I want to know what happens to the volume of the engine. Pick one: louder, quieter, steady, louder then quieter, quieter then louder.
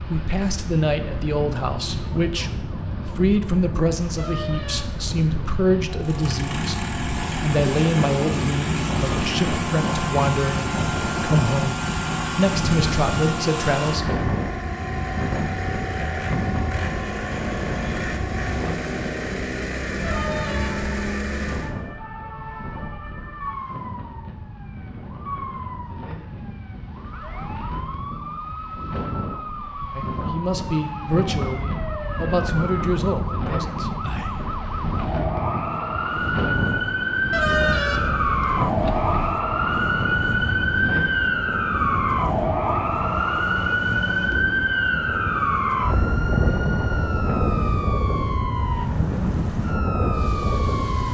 steady.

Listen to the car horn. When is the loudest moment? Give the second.
38 s.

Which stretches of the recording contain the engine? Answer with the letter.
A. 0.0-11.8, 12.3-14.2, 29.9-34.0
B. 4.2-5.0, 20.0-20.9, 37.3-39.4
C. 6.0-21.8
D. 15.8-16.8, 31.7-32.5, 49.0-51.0
C.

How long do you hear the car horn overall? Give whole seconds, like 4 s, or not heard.
4 s.